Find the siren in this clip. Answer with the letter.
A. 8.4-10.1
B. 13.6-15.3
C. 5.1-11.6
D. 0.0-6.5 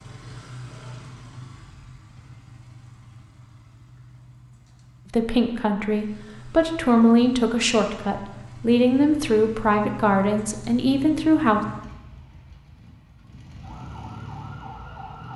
B.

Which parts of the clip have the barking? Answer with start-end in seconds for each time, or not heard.
not heard.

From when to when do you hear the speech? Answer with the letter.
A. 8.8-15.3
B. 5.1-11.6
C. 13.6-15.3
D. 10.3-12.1
B.